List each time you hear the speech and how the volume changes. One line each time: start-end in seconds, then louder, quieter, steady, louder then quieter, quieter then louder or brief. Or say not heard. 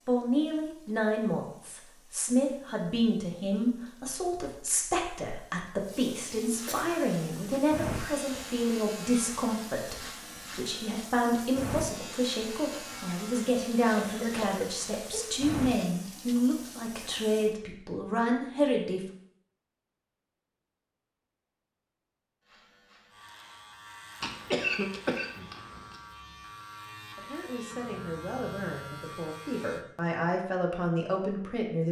0.1-19.0 steady
27.1-31.8 louder.